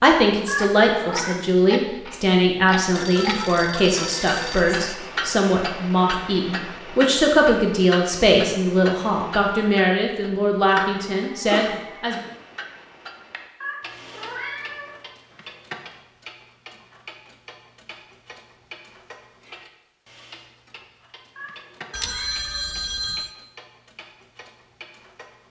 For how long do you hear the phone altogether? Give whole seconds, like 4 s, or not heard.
5 s.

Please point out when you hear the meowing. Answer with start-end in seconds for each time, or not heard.
0.5-1.4, 13.6-15.1, 21.4-23.1.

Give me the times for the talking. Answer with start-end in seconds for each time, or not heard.
0.0-12.2.